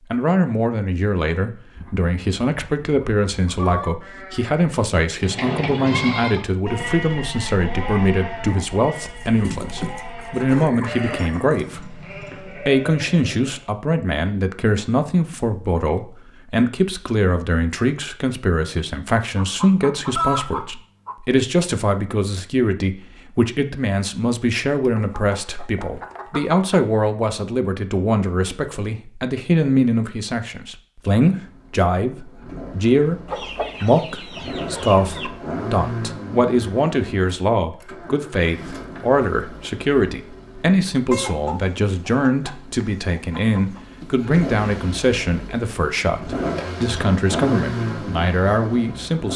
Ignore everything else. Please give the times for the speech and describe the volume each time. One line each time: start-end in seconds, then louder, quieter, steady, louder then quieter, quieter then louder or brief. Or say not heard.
0.1-33.2 steady
33.8-49.3 steady.